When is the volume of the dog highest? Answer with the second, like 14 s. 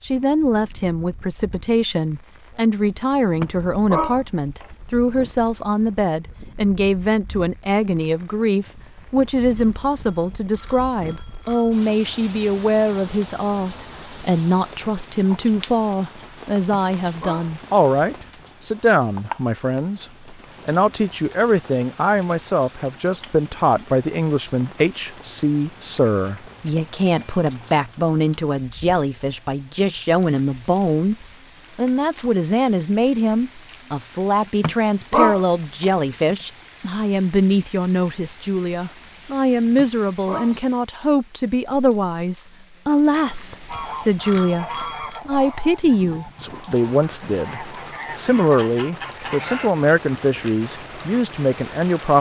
35 s.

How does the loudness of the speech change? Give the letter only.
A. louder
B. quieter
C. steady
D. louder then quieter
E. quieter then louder
C.